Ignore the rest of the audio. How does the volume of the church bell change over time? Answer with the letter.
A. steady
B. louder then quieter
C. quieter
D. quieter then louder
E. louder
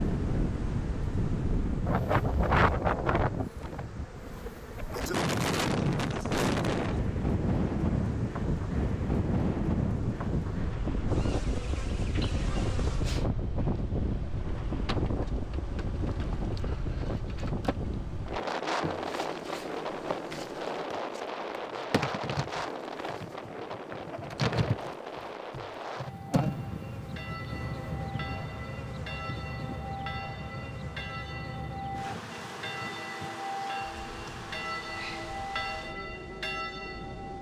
E.